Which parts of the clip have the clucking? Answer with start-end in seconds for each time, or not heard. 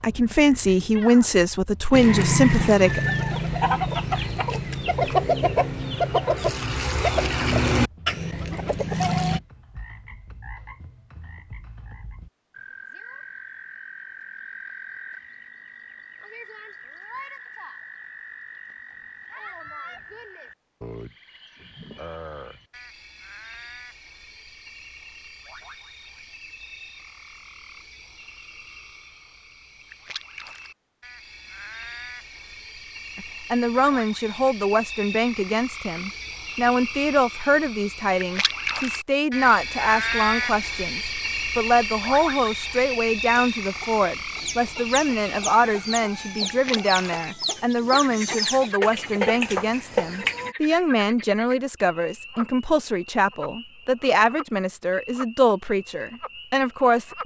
1.9-9.4, 43.1-50.5.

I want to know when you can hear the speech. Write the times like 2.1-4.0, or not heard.
0.0-3.0, 33.1-57.2.